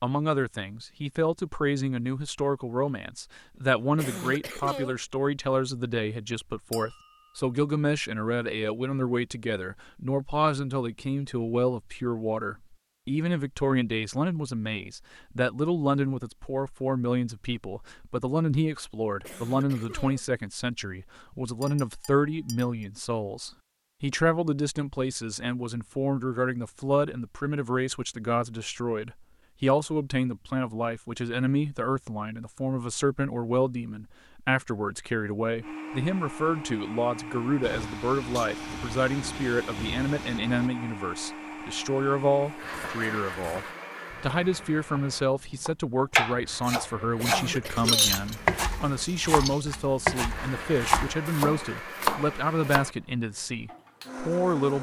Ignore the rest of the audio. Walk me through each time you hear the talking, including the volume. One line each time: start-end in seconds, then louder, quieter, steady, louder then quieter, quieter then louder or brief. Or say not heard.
0.0-54.7 steady.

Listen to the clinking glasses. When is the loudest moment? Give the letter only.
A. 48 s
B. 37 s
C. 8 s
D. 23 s
A.